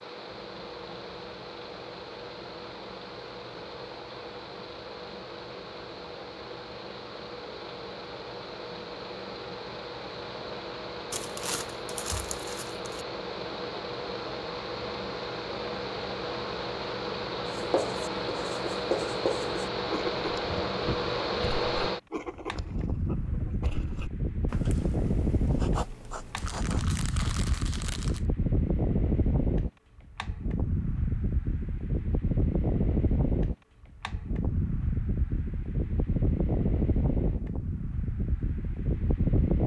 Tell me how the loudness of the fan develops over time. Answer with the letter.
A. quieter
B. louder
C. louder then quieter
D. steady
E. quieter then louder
B.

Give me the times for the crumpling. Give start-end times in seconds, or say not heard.
11.1-12.9, 26.4-28.2.